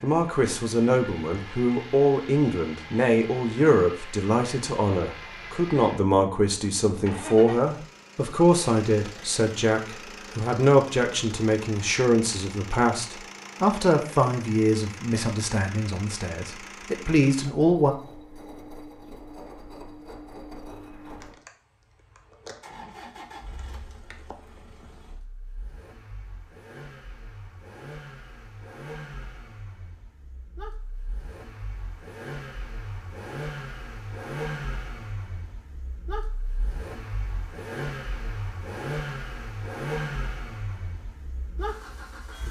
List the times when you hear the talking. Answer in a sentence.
The talking can be heard from 0.0 to 17.9 s.